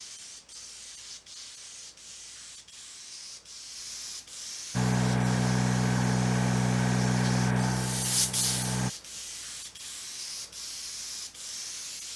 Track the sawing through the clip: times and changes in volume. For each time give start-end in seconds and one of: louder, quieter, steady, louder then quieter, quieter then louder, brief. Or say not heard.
not heard.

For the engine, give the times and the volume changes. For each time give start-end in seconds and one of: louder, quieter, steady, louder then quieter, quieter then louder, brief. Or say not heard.
4.7-8.9 quieter.